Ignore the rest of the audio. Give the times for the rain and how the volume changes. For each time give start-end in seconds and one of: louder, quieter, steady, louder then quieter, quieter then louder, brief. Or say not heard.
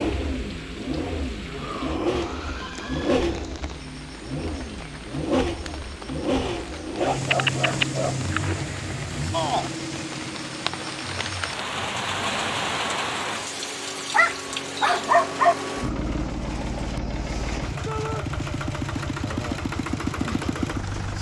0.0-21.1 louder then quieter.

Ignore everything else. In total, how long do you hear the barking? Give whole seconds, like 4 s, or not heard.
3 s.